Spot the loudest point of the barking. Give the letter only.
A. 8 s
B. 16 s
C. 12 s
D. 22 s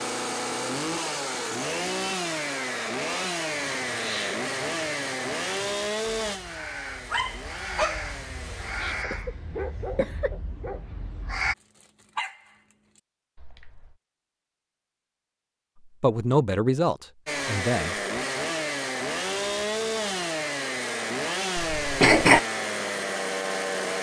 A.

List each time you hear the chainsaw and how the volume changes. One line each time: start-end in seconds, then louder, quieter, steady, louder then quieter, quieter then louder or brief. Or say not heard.
0.0-9.1 quieter
17.2-23.9 steady.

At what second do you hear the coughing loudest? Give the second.
22 s.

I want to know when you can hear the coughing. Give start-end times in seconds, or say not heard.
9.1-10.3, 21.6-22.4.